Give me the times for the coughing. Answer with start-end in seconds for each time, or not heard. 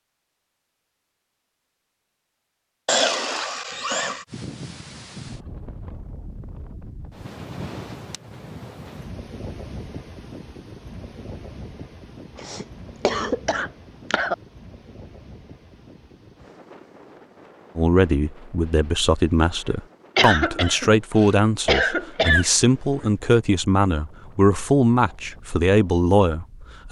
2.9-4.2, 12.3-14.3, 20.1-22.4.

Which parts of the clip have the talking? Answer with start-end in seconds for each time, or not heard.
17.8-26.8.